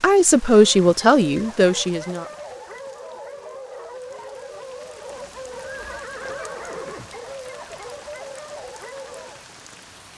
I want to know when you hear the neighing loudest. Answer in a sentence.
The volume of the neighing peaks at 6 seconds.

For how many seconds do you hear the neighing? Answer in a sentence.
You can hear the neighing for 2 seconds altogether.